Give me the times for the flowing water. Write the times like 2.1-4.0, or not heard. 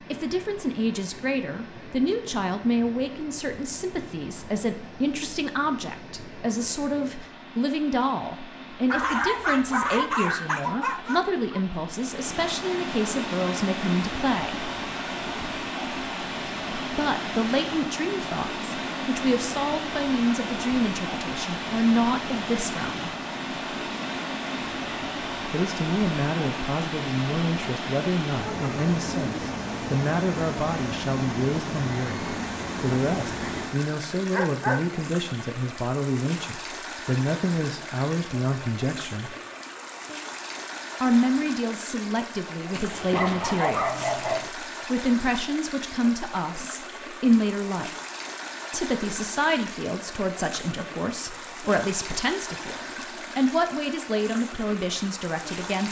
0.0-55.8.